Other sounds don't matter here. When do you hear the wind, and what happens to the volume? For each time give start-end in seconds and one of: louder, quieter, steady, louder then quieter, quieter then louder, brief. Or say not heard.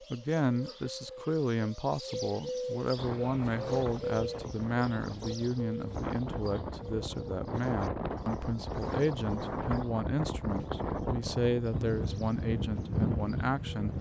3.0-13.9 louder.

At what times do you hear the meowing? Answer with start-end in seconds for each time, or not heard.
not heard.